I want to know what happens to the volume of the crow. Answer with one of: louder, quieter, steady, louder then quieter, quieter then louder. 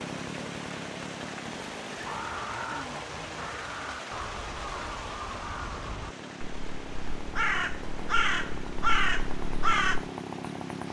louder.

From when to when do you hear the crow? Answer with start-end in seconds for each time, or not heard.
1.9-10.1.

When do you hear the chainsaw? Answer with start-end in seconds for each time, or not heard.
0.0-10.8.